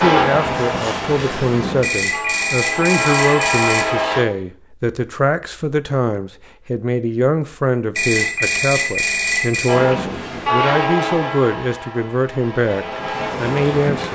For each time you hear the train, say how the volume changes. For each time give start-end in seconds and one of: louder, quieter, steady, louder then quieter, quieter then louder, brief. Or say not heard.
0.0-4.2 quieter then louder
9.7-14.1 quieter then louder.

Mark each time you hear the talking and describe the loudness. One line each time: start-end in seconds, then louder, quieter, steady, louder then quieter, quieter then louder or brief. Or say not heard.
0.0-14.1 steady.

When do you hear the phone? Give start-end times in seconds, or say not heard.
1.8-3.9, 8.0-9.8.